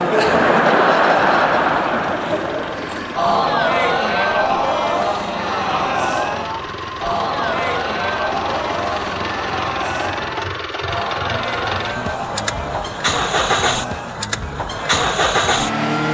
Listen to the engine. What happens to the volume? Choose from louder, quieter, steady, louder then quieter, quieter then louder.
louder.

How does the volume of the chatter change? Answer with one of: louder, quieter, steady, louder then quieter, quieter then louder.
quieter.